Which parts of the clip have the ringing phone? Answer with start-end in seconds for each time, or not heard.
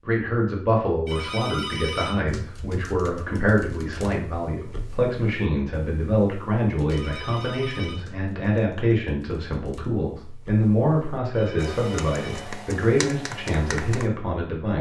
1.1-2.2, 6.8-8.1, 11.3-12.5.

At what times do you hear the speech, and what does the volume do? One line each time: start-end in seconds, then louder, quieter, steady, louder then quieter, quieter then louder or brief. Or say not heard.
0.1-14.7 steady.